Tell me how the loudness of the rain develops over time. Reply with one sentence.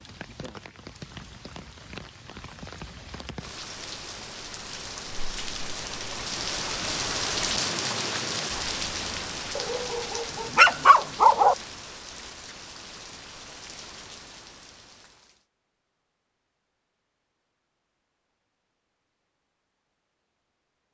The loudness of the rain goes up, then down.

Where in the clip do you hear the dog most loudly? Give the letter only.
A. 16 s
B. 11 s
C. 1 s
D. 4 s
B.